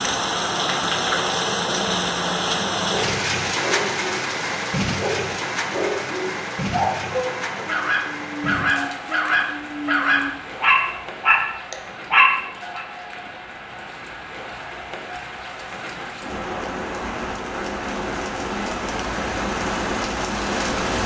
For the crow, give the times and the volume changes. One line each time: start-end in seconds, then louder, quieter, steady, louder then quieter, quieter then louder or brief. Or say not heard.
not heard.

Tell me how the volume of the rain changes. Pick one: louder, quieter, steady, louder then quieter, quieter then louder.
quieter then louder.